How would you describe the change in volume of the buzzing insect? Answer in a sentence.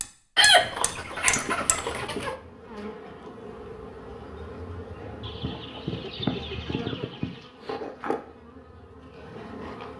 The loudness of the buzzing insect stays about the same.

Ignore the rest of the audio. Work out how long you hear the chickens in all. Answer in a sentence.
The chickens can be heard for 4 seconds in total.